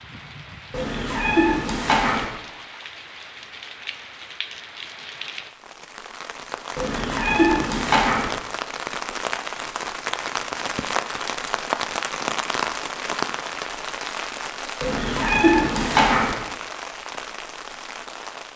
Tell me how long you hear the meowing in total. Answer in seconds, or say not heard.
5 s.